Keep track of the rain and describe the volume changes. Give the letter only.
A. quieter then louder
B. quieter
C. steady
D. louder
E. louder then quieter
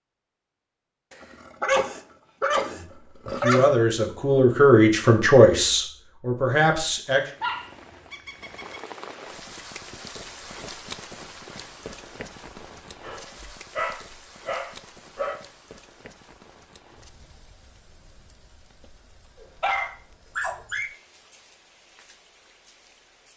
B.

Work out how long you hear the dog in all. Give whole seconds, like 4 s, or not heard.
8 s.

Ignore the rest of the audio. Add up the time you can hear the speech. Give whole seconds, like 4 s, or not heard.
4 s.